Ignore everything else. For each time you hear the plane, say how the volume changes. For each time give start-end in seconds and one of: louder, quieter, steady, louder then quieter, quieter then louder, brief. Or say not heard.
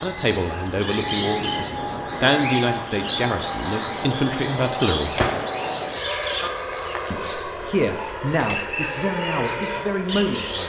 0.0-10.6 steady.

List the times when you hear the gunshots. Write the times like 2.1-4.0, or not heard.
5.2-5.8.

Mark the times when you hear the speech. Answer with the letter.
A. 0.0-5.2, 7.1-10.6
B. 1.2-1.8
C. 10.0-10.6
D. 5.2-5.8
A.